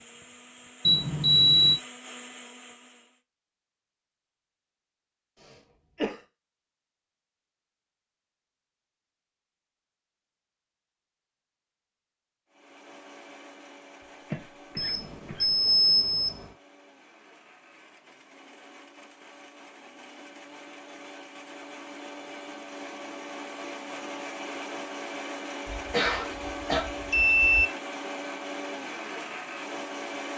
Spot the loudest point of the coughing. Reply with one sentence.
The loudest moment of the coughing is at 26 seconds.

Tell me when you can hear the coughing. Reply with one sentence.
The coughing can be heard from 5.4 to 6.2 s, from 14.3 to 15.7 s and from 25.9 to 26.9 s.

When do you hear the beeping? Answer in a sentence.
You can hear the beeping from 0.8 to 1.8 s, from 14.8 to 16.4 s and from 25.6 to 27.7 s.